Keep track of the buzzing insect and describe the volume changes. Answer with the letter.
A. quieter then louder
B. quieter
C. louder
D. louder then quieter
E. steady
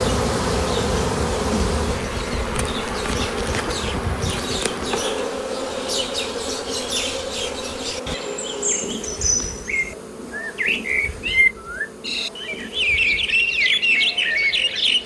B.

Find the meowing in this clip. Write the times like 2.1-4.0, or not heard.
not heard.